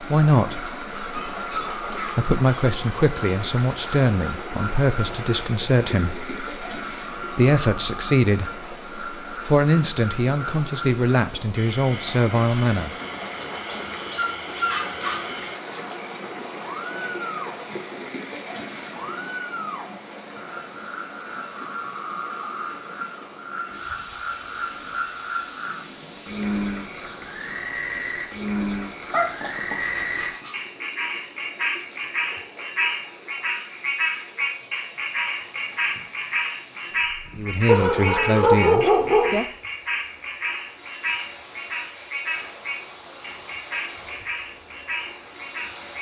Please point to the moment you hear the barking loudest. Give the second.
39 s.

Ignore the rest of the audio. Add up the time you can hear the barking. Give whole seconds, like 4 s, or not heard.
7 s.